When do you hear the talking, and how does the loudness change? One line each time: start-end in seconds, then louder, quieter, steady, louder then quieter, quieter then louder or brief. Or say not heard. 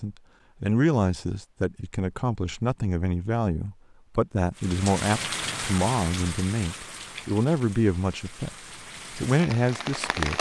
0.0-10.3 steady.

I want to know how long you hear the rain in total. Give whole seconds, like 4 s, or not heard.
6 s.